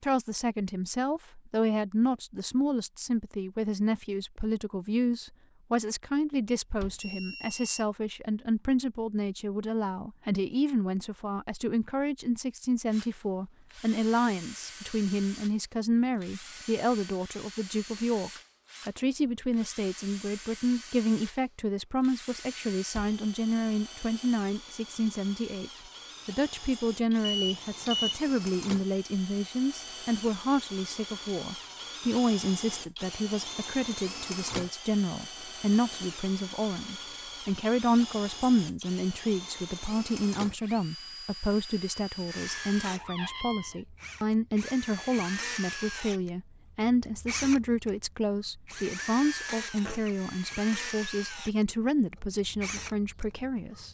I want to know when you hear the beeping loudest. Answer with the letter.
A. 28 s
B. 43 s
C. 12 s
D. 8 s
A.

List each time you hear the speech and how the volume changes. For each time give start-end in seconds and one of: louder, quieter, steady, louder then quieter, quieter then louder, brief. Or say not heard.
0.0-53.8 steady.